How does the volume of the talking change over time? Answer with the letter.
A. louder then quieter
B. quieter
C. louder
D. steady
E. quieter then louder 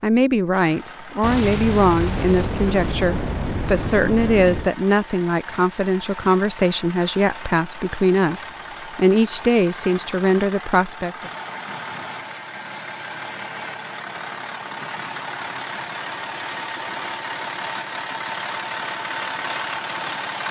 D.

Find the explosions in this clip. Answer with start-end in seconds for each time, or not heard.
1.2-4.7.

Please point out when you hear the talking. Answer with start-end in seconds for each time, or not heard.
0.0-11.3.